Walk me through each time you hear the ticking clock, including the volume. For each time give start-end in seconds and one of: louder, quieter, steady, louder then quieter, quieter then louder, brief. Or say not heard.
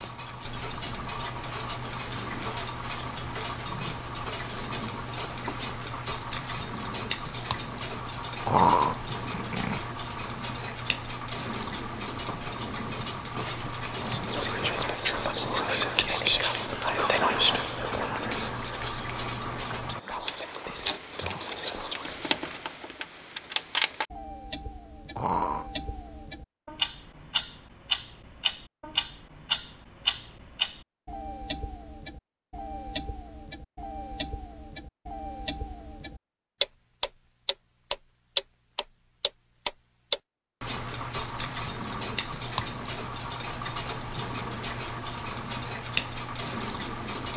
0.0-47.3 steady.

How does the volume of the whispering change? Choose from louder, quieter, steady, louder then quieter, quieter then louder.
quieter.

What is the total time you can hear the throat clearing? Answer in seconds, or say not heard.
2 s.